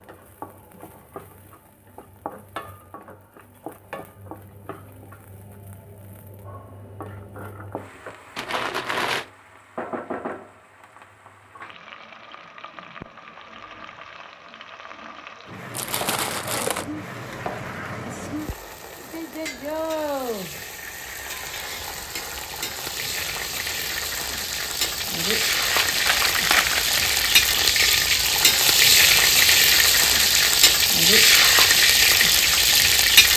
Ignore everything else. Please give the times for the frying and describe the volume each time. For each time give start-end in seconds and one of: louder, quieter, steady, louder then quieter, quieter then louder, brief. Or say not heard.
0.0-33.3 louder.